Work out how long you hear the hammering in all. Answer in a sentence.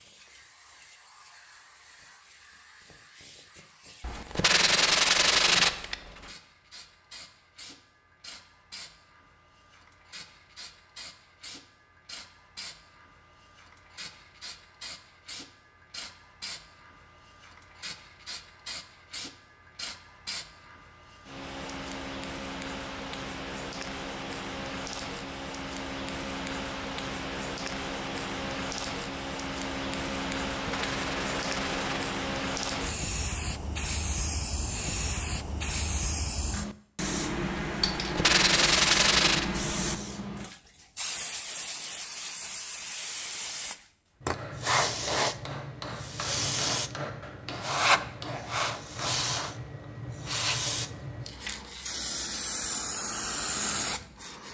The hammering can be heard for 5 seconds in total.